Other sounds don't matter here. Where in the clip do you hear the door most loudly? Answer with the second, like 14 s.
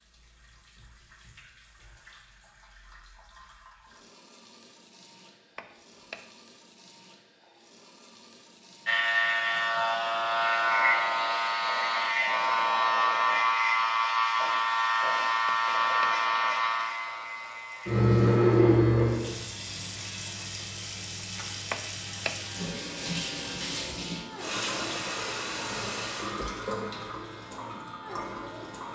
22 s.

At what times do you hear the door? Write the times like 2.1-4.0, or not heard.
5.5-6.2, 15.4-16.1, 21.7-22.4.